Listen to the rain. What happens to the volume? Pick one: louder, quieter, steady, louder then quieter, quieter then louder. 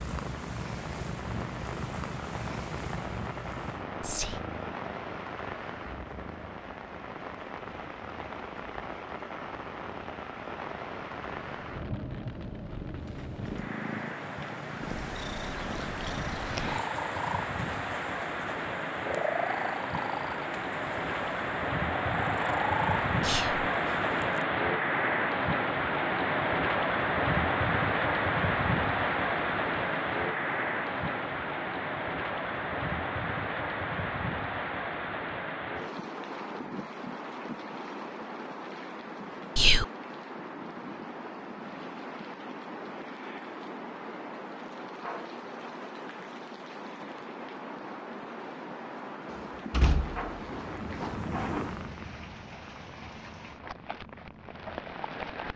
louder then quieter.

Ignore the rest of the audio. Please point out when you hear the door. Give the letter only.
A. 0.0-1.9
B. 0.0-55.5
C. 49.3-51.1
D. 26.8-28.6
C.